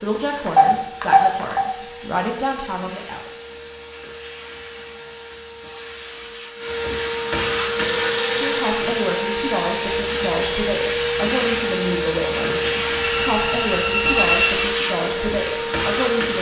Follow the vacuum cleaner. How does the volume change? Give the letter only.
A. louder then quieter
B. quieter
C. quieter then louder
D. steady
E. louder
E.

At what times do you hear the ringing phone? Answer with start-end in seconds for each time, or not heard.
0.5-1.6, 7.8-8.8, 13.0-14.5.